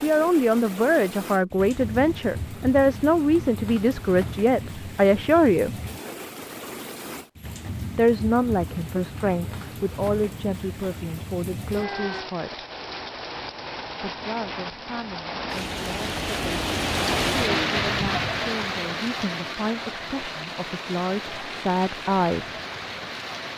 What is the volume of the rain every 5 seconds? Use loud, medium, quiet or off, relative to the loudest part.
medium, medium, medium, loud, medium.